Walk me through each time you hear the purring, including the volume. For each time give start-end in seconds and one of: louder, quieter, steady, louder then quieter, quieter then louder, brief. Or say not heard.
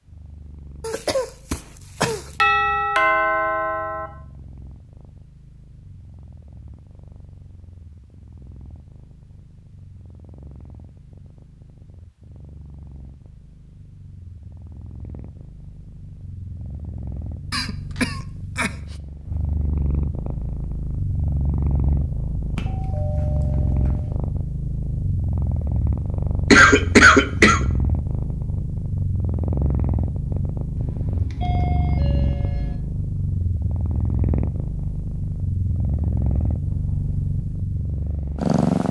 0.0-38.8 louder.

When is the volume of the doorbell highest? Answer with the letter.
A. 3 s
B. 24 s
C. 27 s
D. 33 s
A.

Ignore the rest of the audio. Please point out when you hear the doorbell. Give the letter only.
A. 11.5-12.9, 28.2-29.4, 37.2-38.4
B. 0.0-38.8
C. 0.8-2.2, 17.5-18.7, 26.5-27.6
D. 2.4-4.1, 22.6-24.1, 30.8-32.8
D.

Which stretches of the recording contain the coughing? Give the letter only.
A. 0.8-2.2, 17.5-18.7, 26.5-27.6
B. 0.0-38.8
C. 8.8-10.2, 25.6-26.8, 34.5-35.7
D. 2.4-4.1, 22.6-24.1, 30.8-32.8
A.